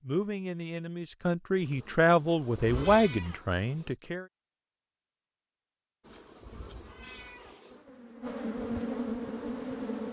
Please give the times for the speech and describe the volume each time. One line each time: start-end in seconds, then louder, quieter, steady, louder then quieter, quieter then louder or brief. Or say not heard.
0.0-4.2 louder then quieter.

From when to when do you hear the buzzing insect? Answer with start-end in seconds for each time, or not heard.
1.6-4.0, 6.0-10.0.